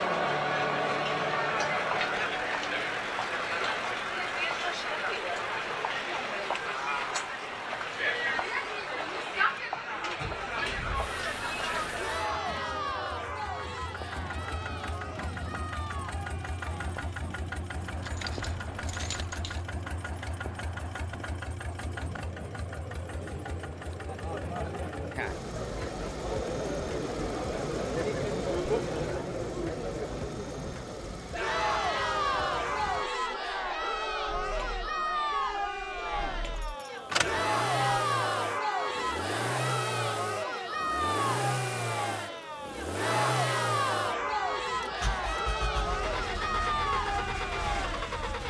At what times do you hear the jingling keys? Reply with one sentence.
The jingling keys can be heard from 18.0 to 19.6 s and from 36.5 to 38.0 s.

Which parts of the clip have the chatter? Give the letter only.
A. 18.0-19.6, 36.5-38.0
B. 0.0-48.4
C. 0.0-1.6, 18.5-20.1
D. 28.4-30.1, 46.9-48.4
B.